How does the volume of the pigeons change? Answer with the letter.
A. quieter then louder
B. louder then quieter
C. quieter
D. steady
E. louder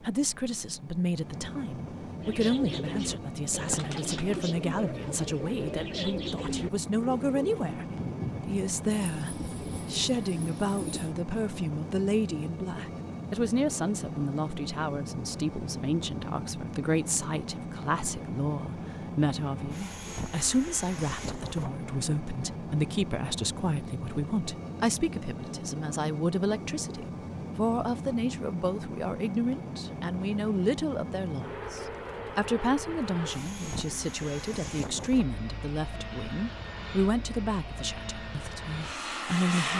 C.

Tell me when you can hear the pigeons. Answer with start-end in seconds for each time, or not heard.
2.1-11.2.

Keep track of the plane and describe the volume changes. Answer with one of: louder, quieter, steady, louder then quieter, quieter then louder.
steady.